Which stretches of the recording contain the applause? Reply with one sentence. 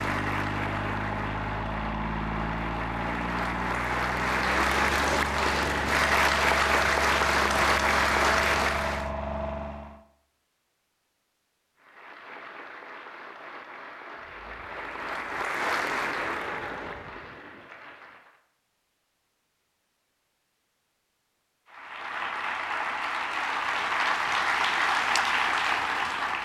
You can hear the applause from 0.0 to 9.1 s, from 11.8 to 18.4 s and from 21.6 to 26.3 s.